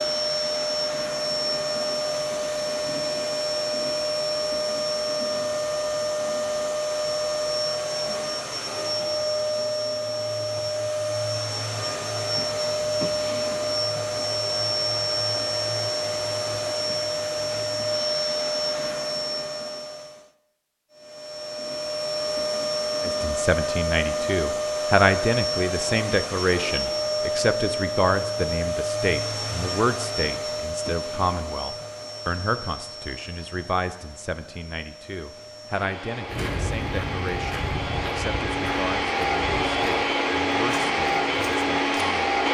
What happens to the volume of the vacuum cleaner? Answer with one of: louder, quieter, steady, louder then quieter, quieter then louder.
steady.